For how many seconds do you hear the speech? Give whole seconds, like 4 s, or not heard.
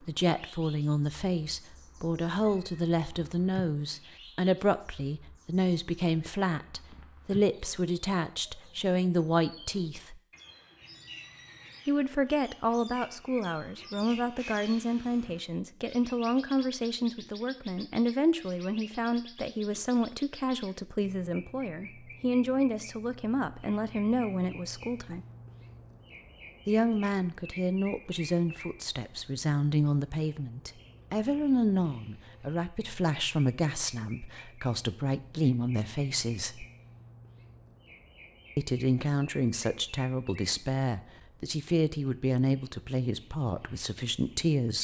40 s.